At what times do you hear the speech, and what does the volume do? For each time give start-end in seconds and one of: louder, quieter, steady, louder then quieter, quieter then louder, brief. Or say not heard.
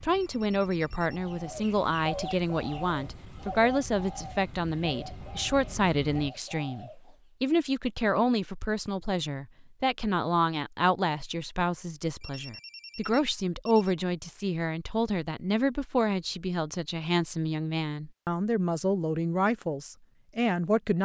0.0-21.0 steady.